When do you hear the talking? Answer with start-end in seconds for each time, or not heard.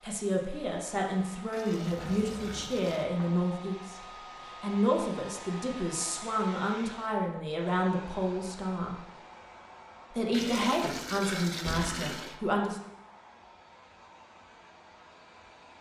0.0-4.0, 4.6-9.0, 10.1-12.8.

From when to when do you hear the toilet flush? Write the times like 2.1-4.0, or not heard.
1.5-3.1, 10.3-12.4.